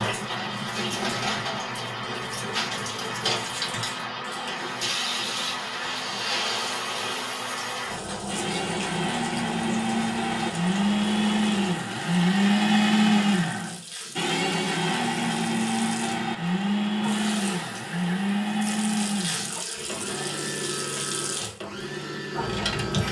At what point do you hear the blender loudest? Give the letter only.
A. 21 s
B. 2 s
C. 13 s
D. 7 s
C.